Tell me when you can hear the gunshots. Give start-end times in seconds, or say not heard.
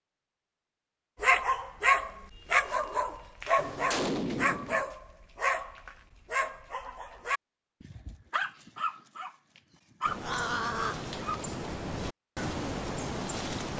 3.5-4.8.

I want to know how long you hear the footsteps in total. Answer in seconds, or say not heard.
not heard.